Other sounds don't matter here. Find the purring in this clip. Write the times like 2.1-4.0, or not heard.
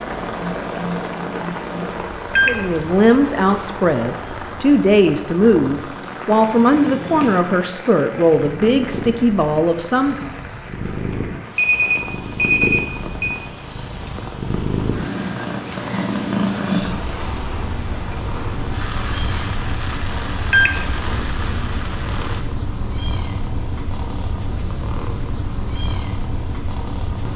0.0-27.3.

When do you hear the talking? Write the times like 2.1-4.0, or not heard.
2.5-10.3.